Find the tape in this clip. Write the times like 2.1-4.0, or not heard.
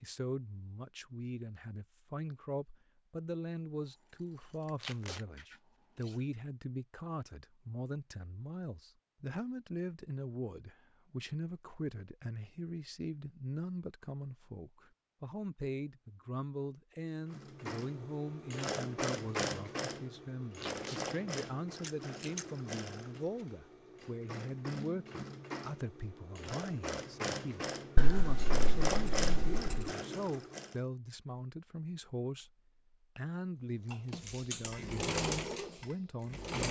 4.8-5.2, 20.6-21.0.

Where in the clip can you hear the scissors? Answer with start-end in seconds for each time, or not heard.
4.8-6.2, 21.8-22.4, 27.9-29.9.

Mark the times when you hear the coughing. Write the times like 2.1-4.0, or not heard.
not heard.